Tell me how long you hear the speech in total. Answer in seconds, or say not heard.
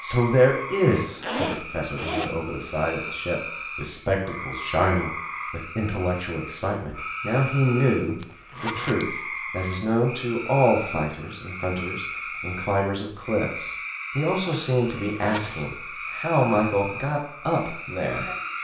18 s.